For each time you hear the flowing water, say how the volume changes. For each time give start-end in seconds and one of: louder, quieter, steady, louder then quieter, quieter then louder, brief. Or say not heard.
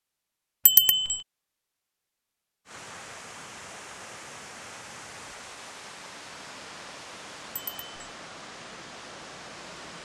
2.6-9.9 steady.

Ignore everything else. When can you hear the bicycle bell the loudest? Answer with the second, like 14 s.
1 s.